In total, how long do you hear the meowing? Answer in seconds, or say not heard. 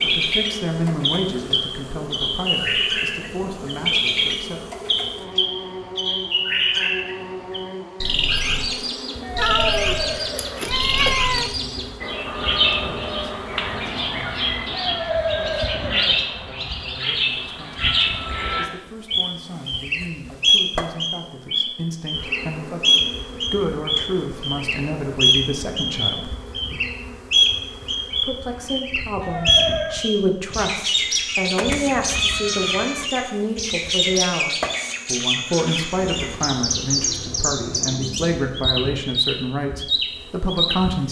4 s.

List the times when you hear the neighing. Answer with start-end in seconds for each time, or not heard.
9.2-10.7, 14.7-16.2, 29.2-30.1.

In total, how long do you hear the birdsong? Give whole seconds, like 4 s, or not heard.
41 s.